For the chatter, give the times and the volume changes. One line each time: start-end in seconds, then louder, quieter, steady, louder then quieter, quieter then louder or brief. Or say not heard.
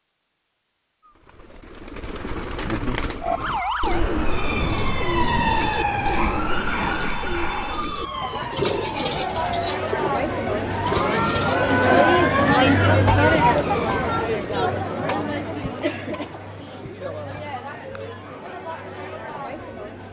7.8-20.0 louder then quieter.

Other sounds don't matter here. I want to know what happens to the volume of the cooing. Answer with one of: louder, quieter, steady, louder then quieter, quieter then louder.
steady.